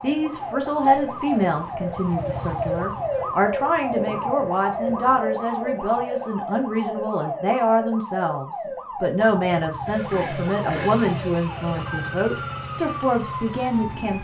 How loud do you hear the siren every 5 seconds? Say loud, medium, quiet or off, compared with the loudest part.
loud, loud, medium.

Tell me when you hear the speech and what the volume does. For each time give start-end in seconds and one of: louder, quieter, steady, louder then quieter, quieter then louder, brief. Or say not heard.
0.0-14.1 steady.